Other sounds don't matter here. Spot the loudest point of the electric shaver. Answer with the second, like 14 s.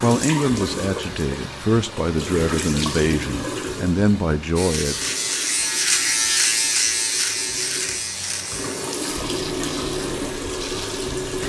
6 s.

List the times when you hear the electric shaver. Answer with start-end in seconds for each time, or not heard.
4.5-11.2.